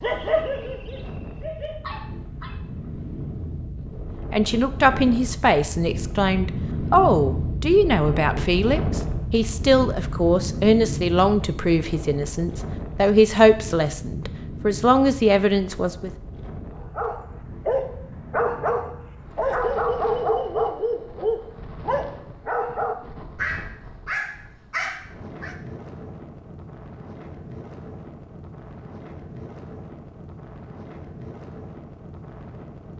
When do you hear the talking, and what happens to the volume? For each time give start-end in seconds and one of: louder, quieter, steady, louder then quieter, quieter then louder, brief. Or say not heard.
4.3-16.1 steady.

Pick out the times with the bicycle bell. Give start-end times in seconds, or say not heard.
not heard.